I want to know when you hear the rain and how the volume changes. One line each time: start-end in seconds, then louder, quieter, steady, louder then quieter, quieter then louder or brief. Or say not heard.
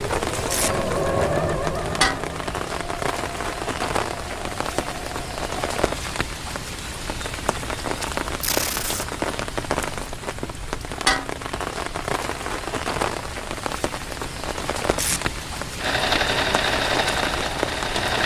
0.0-18.2 steady.